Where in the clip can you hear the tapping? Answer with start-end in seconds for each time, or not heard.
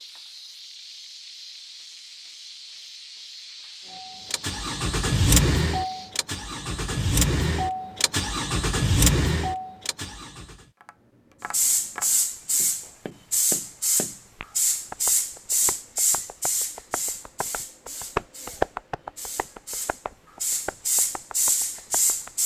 10.8-22.3.